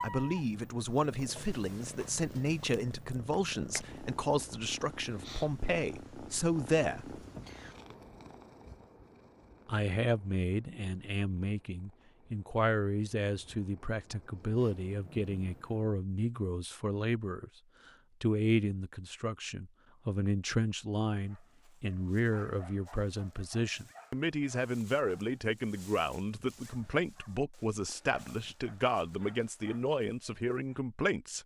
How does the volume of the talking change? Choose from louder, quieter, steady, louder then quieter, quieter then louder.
steady.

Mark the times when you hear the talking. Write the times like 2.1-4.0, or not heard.
0.0-7.2, 9.7-17.5, 18.2-31.4.